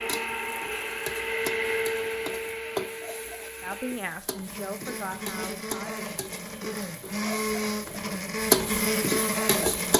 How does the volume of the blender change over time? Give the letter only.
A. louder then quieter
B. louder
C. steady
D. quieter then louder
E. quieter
D.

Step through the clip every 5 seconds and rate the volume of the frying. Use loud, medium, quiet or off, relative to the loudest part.
medium, loud.